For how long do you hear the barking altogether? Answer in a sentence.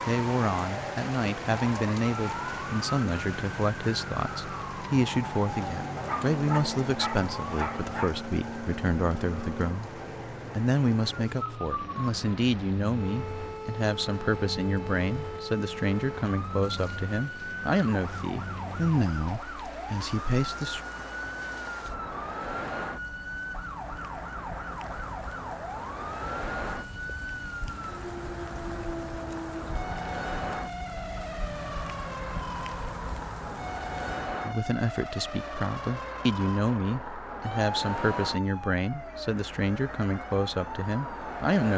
The barking can be heard for 2 seconds in total.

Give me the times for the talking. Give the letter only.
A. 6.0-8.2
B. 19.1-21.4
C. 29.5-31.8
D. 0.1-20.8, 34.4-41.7
D.